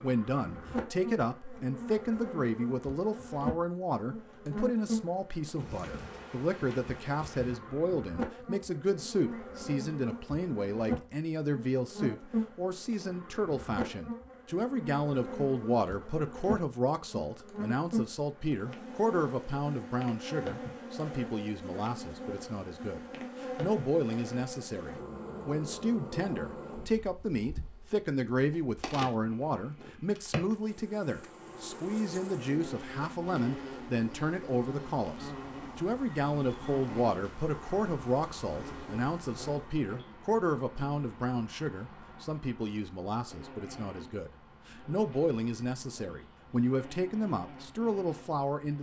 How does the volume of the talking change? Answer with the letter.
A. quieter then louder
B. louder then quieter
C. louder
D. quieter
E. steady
E.